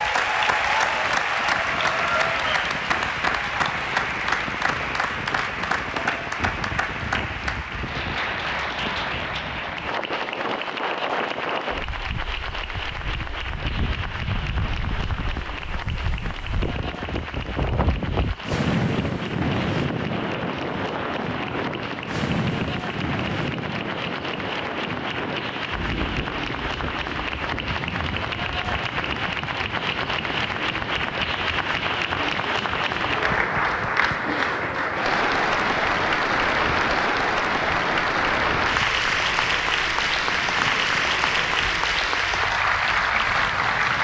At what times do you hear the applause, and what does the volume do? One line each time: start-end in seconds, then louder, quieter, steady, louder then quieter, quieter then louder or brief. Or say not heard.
0.0-43.9 quieter then louder.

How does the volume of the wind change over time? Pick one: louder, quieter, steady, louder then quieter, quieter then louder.
louder then quieter.